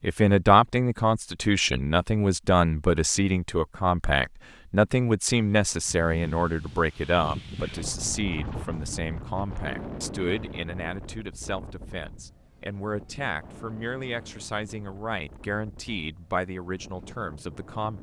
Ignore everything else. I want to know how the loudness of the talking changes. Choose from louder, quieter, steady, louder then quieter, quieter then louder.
quieter.